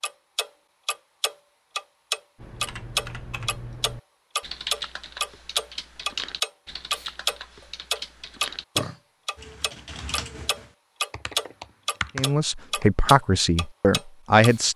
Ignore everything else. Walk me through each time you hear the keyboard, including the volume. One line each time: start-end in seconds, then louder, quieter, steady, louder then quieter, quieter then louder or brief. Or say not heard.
2.4-12.8 steady.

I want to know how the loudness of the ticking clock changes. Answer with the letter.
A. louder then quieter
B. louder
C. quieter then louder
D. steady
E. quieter
E.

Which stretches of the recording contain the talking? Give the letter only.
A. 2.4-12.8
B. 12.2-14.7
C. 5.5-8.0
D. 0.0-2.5
B.